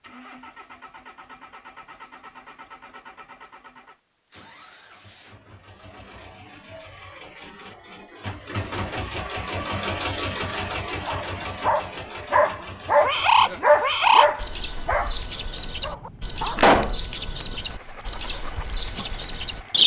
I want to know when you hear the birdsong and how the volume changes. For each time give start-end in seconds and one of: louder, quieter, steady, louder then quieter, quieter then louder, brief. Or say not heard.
0.0-19.8 louder.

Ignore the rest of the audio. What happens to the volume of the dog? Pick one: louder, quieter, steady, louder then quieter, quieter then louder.
quieter.